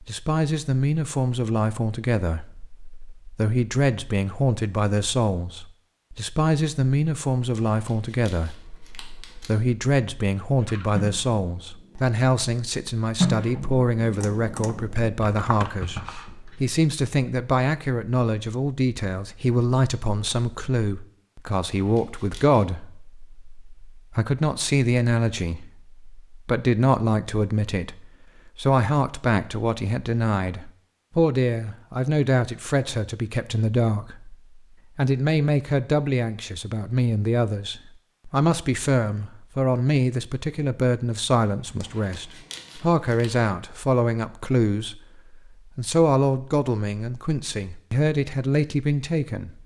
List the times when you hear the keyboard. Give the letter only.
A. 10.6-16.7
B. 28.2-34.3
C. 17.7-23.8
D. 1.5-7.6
A.